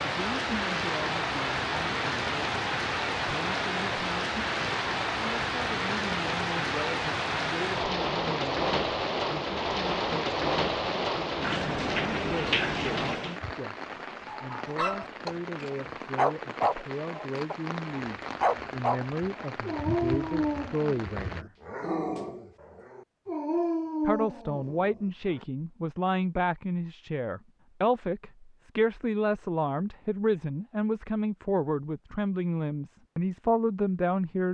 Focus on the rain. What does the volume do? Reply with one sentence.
The volume of the rain goes down.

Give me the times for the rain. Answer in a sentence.
You can hear the rain from 0.0 to 21.4 s.